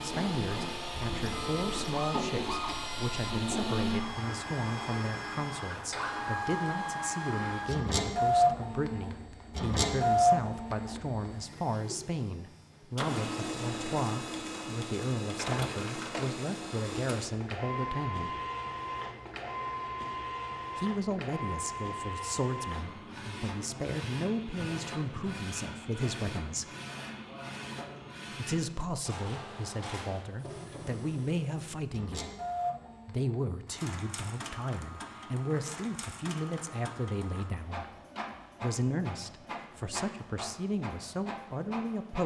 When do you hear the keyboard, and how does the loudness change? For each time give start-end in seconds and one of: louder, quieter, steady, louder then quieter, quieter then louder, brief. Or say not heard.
not heard.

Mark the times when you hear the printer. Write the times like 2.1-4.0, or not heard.
0.0-42.2.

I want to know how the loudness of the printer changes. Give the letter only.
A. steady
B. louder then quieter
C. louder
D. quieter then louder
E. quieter
E.